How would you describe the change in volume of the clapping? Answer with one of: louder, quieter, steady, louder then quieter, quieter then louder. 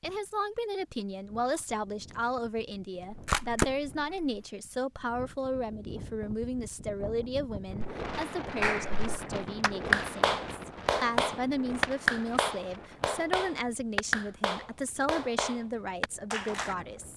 quieter.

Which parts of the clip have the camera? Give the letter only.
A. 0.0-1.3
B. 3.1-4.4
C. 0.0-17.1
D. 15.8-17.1
B.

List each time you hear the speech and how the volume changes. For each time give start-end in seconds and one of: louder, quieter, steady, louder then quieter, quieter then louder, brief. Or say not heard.
0.0-17.1 steady.